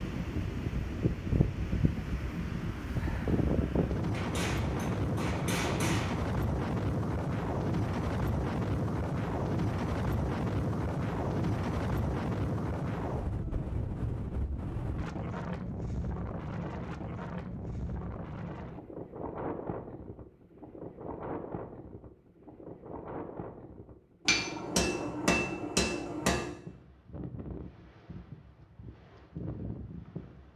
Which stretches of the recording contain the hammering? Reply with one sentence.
The hammering can be heard from 4.1 to 6.2 s and from 24.2 to 26.6 s.